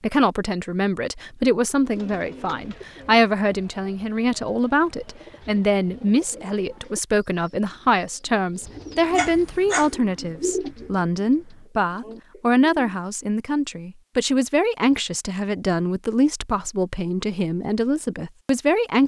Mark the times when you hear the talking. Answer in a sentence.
You can hear the talking from 0.0 to 19.0 s.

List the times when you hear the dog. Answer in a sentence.
You can hear the dog from 9.2 to 9.9 s.